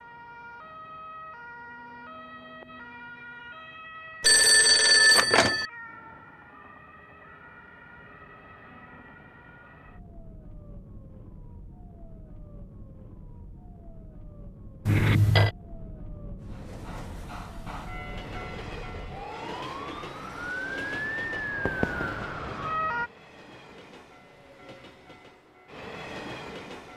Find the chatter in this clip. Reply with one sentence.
You can't hear the chatter here.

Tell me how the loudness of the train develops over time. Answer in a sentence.
The volume of the train goes down, then up.